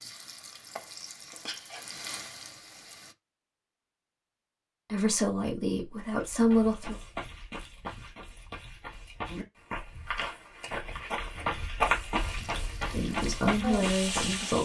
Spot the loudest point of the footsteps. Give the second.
12 s.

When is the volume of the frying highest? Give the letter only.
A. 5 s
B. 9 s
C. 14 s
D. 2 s
C.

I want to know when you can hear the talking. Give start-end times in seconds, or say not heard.
4.9-7.0, 12.9-14.6.